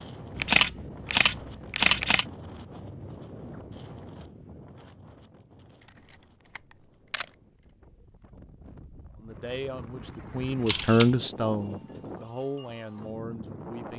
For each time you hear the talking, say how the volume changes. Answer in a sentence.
You can hear the talking from 9.2 to 13.9 s, getting louder then quieter.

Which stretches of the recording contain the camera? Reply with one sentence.
The camera can be heard from 0.3 to 2.2 s, from 6.1 to 7.2 s and from 10.7 to 11.2 s.